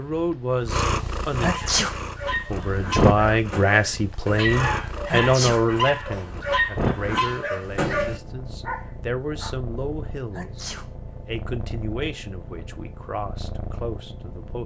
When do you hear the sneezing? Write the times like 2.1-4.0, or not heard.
1.4-1.9, 5.0-5.7, 10.3-10.9.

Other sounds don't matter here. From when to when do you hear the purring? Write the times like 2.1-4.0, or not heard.
0.0-14.6.